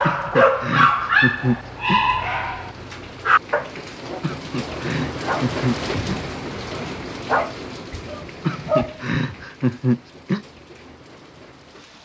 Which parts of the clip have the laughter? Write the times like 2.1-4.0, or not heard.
0.0-2.0, 4.2-6.2, 8.4-10.4.